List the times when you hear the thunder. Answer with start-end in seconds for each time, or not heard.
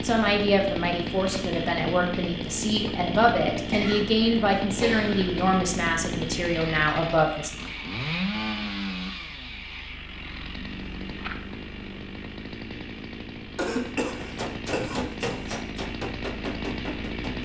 not heard.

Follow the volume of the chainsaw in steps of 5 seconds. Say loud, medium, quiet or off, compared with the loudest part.
loud, loud, medium, loud.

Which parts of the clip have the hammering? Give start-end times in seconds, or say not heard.
14.2-17.4.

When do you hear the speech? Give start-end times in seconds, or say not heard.
0.0-7.5.